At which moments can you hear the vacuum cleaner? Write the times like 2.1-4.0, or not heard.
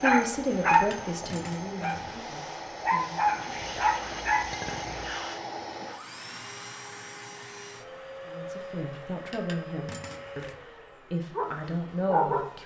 0.1-12.6.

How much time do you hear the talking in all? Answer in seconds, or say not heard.
7 s.